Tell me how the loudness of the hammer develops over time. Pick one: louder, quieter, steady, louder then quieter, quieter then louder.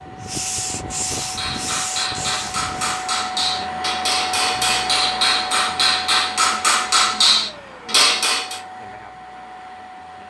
louder.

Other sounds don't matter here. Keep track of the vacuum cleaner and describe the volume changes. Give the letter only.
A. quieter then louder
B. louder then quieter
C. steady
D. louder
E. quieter
B.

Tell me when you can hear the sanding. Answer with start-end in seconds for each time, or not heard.
0.0-3.1.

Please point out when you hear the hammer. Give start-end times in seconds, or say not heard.
1.1-8.6.